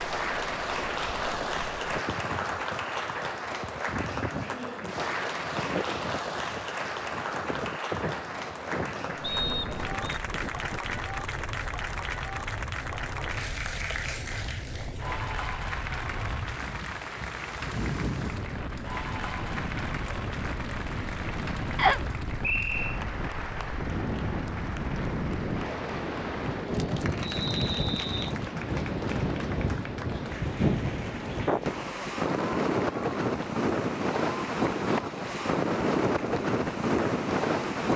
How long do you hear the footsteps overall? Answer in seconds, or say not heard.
not heard.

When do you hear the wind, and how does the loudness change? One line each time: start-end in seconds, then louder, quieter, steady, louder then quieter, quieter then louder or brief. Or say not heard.
0.0-37.9 louder.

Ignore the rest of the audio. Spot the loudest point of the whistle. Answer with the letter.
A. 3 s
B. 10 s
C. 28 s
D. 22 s
D.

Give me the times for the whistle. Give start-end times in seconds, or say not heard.
9.2-10.2, 21.8-22.9, 27.2-28.4.